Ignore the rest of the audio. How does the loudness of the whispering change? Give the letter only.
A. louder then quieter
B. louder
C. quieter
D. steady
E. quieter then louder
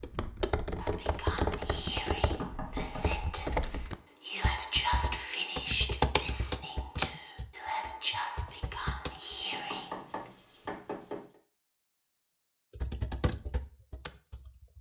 A.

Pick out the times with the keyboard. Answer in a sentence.
You can hear the keyboard from 0.0 to 9.3 s and from 12.8 to 14.7 s.